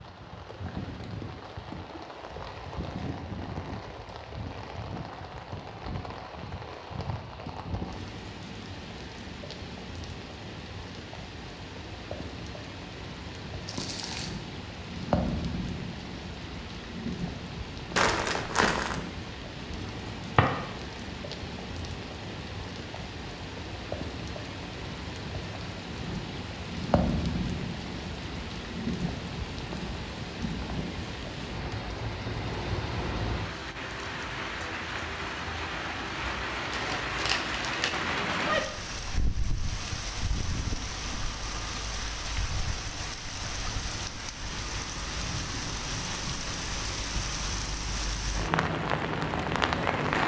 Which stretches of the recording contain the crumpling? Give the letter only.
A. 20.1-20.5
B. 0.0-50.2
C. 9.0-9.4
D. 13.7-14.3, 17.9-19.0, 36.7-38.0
D.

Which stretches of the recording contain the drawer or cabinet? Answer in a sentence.
You can hear the drawer or cabinet from 20.1 to 20.5 s.